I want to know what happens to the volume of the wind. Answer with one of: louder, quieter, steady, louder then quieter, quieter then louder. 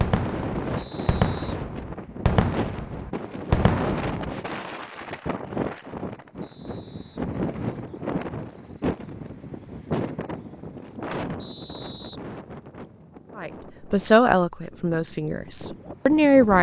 quieter.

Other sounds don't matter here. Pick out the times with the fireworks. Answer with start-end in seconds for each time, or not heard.
0.0-4.1.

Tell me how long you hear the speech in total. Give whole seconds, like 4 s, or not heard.
3 s.